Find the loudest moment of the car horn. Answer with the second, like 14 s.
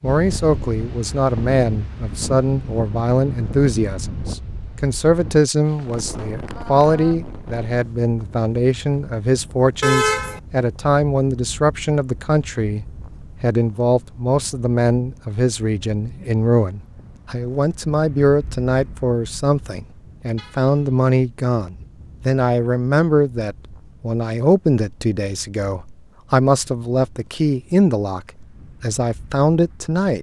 10 s.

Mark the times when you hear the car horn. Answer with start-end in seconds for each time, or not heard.
9.8-10.4, 20.4-21.1.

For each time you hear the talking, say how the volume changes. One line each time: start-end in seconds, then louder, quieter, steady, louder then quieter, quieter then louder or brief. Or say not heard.
0.0-30.1 steady.